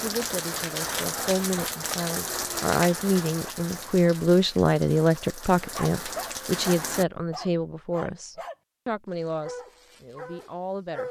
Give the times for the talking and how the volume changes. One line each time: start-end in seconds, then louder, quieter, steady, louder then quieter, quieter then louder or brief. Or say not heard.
0.0-11.0 louder then quieter.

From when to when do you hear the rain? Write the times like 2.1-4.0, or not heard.
0.0-7.0.